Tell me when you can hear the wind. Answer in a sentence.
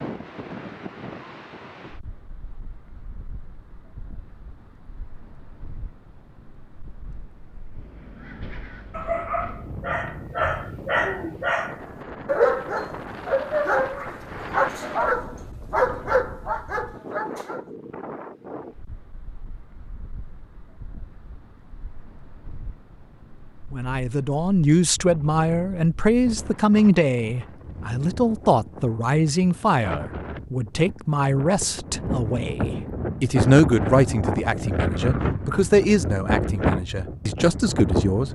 The wind can be heard from 0.0 to 38.3 s.